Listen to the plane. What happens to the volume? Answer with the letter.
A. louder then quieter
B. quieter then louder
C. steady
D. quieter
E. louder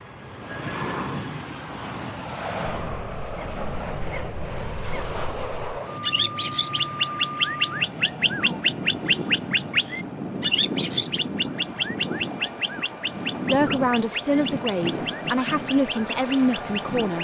C.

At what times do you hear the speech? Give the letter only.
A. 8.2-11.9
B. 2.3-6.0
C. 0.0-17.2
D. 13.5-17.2
D.